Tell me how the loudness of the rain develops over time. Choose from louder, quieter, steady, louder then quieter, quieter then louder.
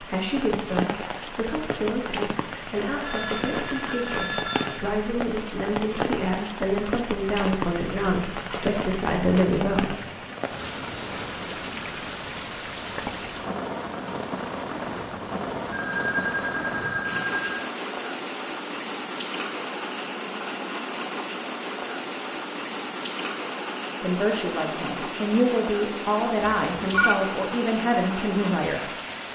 steady.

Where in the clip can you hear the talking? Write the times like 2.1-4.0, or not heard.
0.0-9.9, 24.0-28.8.